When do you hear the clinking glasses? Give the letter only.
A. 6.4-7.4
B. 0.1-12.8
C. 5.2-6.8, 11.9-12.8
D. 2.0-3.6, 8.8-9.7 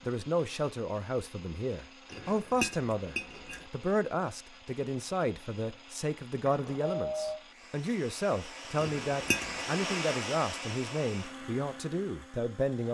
D.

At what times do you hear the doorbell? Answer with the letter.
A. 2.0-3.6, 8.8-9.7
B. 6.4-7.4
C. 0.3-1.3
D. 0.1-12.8
B.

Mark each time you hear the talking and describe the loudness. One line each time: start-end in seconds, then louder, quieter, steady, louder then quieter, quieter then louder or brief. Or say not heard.
0.1-12.8 steady.